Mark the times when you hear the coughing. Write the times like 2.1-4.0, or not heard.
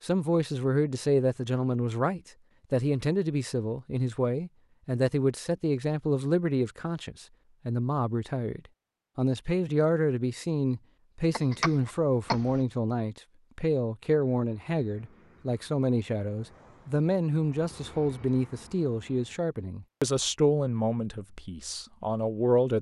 11.3-12.6.